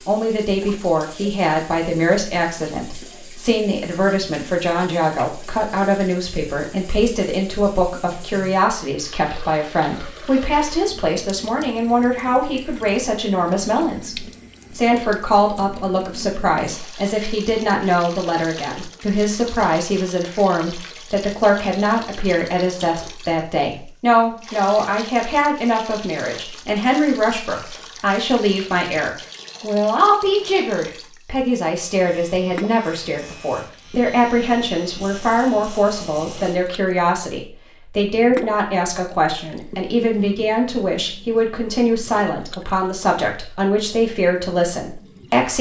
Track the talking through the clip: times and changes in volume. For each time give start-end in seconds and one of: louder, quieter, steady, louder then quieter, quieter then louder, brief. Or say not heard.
0.1-45.5 steady.